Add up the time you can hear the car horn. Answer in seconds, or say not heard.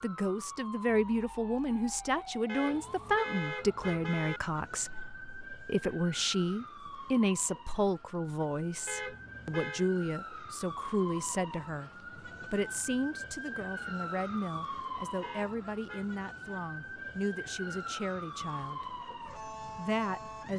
4 s.